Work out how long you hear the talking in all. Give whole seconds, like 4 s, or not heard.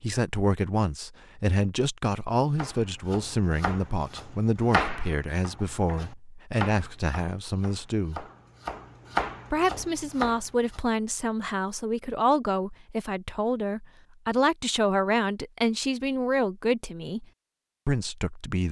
17 s.